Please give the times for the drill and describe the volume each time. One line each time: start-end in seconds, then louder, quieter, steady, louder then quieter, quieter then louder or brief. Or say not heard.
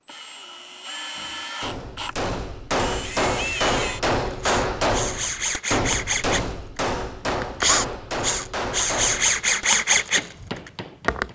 0.0-11.3 louder.